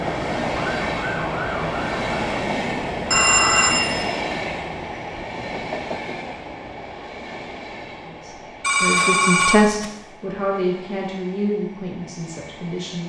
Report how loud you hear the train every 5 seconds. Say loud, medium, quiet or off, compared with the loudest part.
loud, medium, quiet.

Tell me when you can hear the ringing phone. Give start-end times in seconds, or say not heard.
3.1-4.2, 8.6-9.8.